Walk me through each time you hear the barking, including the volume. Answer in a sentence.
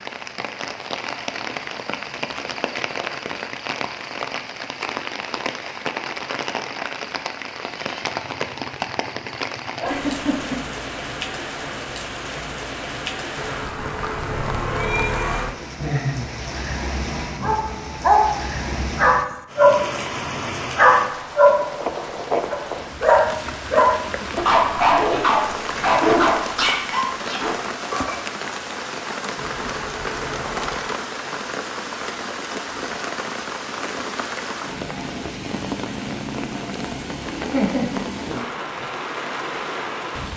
The barking can be heard briefly from 17.3 to 19.8 s; briefly from 20.8 to 21.6 s; and from 22.5 to 28.2 s, getting quieter.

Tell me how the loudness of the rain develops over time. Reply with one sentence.
The loudness of the rain stays about the same.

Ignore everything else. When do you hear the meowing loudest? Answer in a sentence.
The loudest moment of the meowing is at 15 seconds.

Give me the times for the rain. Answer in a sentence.
The rain can be heard from 0.0 to 40.3 s.